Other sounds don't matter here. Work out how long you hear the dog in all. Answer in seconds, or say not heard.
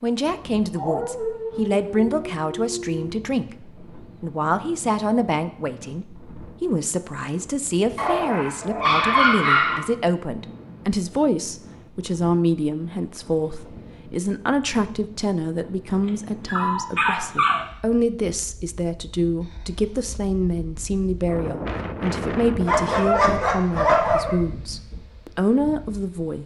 8 s.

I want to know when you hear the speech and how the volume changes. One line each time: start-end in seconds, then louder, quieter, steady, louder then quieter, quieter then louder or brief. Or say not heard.
0.0-26.4 steady.